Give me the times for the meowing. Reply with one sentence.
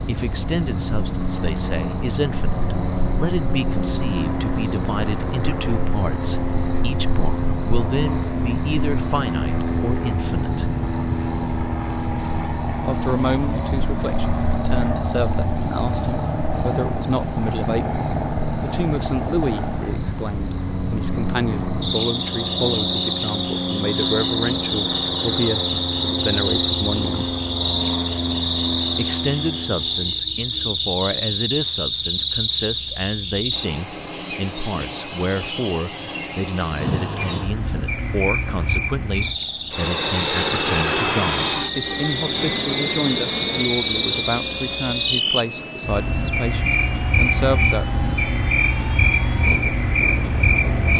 You can't hear the meowing here.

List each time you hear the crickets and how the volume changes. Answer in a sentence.
The crickets can be heard from 0.0 to 50.9 s, getting louder.